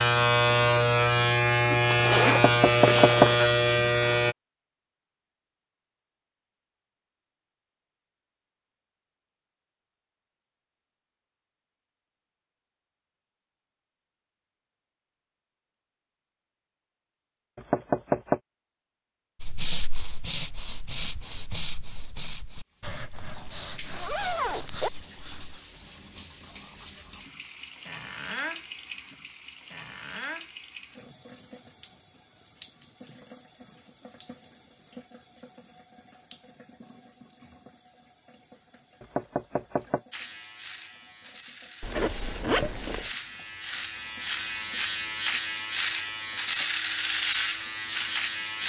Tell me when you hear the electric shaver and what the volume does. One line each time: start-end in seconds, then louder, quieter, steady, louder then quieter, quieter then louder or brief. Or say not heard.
0.0-4.3 steady
40.1-48.6 louder.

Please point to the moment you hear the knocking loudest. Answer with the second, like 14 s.
3 s.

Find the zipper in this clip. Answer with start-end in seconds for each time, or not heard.
1.9-3.4, 23.1-24.9, 41.8-43.1.